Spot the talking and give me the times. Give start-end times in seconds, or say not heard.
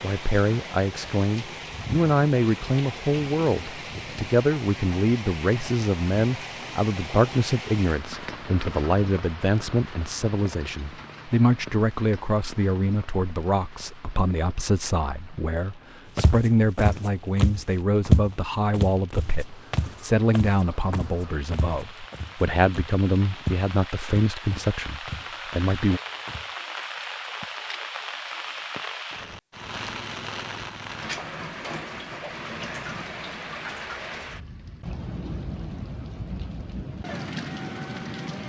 0.0-26.0.